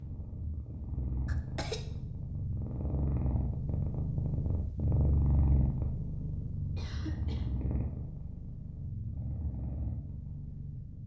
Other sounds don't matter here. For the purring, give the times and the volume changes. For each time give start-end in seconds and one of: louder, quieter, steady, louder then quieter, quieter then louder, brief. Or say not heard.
0.0-11.0 louder then quieter.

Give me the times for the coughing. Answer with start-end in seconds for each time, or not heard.
1.2-1.9, 6.8-7.5.